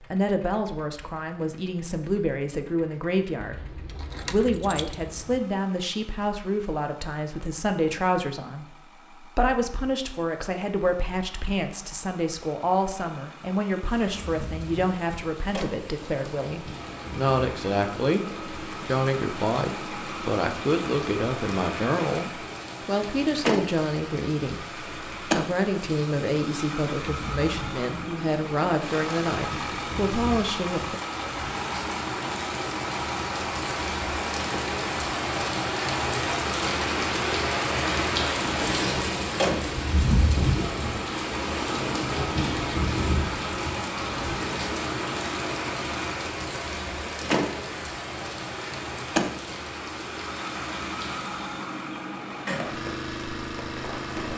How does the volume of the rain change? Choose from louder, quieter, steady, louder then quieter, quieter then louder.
louder then quieter.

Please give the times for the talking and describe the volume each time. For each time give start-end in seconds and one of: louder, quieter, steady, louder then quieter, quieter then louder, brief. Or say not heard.
0.0-31.0 steady.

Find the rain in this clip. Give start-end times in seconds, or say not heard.
13.8-54.3.